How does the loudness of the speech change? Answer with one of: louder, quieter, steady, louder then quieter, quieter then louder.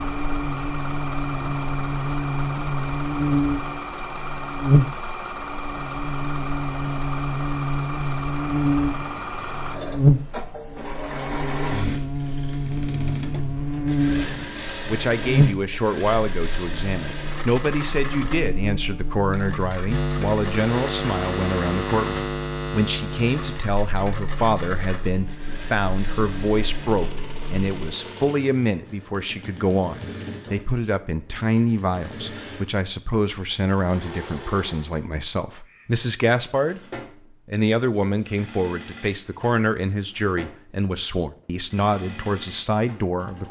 steady.